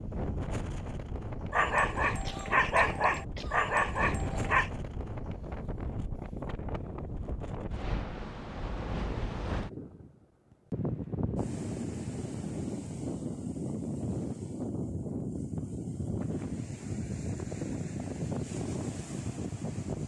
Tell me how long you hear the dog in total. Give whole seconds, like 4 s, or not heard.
3 s.